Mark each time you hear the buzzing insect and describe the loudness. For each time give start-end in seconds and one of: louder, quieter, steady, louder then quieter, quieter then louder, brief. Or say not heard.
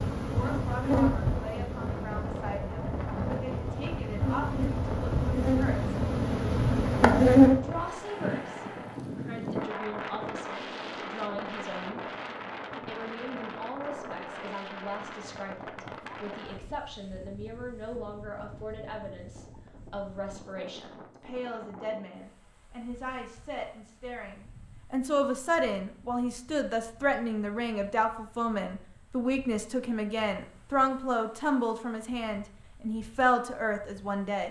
0.0-7.6 quieter then louder.